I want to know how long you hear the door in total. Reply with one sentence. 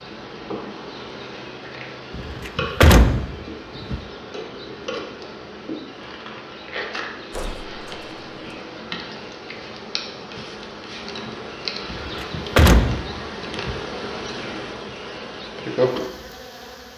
You can hear the door for 5 seconds altogether.